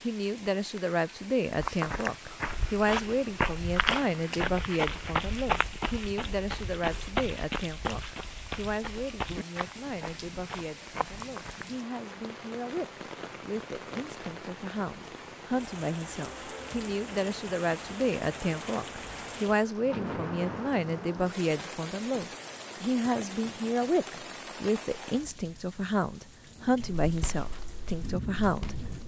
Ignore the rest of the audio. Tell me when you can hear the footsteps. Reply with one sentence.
The footsteps can be heard from 1.6 to 11.8 s and from 26.9 to 29.0 s.